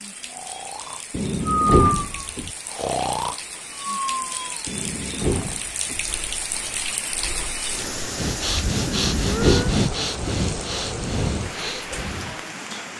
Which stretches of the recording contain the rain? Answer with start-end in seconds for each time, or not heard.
0.0-12.9.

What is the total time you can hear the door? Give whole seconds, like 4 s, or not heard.
4 s.